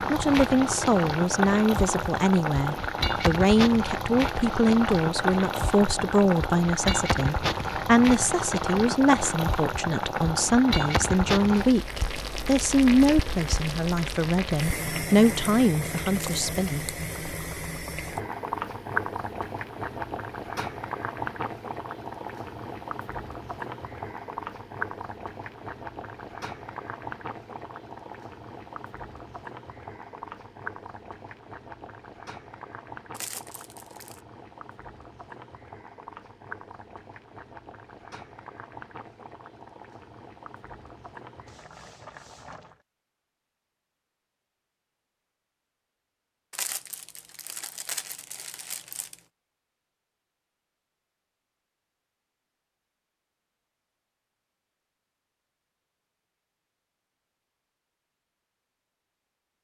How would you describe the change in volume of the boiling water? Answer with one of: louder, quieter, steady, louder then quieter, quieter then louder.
quieter.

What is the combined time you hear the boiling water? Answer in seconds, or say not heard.
43 s.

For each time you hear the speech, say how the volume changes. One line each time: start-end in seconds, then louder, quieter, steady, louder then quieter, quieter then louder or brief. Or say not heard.
0.1-16.9 steady.